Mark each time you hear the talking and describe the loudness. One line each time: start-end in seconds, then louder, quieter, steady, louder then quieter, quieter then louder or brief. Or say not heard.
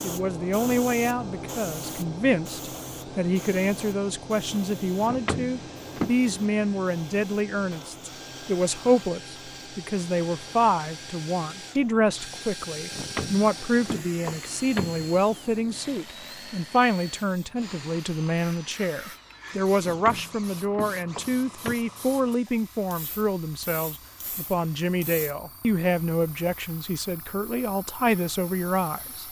0.0-29.2 steady.